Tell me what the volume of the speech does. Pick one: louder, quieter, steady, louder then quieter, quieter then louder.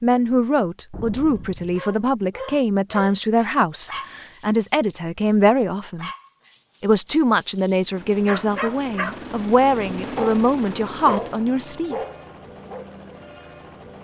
steady.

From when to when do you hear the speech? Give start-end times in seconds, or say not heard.
0.0-6.1, 6.8-11.9.